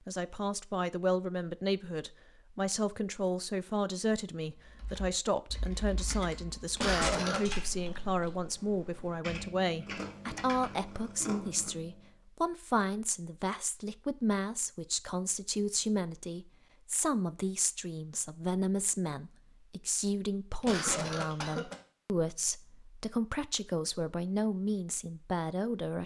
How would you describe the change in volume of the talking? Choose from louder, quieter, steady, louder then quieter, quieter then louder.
steady.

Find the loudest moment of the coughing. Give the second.
7 s.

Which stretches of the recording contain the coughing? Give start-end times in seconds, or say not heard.
6.8-7.5, 20.6-21.8.